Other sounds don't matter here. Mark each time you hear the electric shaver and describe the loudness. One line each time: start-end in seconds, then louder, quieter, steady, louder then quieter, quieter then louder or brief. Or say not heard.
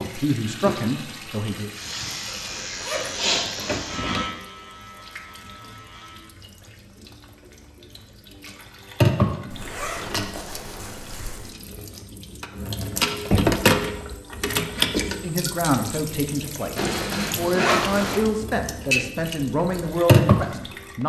1.7-6.3 louder then quieter.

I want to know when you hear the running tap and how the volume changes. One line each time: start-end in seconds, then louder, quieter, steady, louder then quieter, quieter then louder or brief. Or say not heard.
0.0-21.0 quieter then louder.